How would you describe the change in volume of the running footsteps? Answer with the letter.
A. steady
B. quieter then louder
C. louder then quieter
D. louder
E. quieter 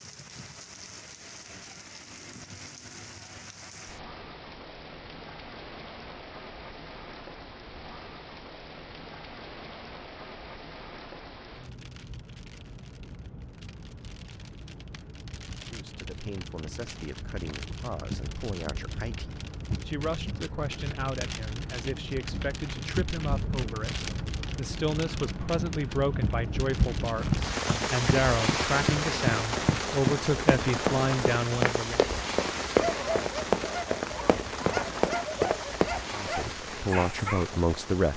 D.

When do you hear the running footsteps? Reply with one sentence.
You can hear the running footsteps from 27.1 to 35.9 s.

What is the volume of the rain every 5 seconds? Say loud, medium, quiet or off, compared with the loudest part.
quiet, quiet, quiet, medium, medium, loud, loud, medium.